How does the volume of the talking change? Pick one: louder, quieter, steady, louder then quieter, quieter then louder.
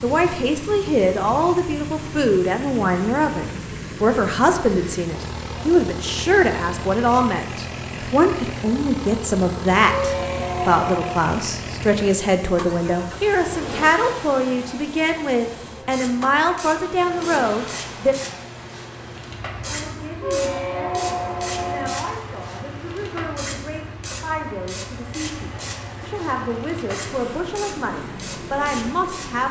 quieter.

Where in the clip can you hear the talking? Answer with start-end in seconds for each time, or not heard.
0.0-18.1, 19.6-29.4.